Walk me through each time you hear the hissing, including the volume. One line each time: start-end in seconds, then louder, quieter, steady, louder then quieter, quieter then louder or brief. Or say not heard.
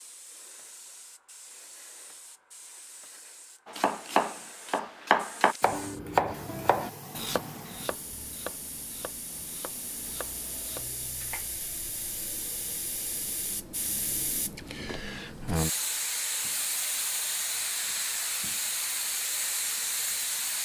0.0-20.5 louder.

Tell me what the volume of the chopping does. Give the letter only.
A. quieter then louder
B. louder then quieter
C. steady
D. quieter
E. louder
D.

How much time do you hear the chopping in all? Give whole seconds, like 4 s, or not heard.
8 s.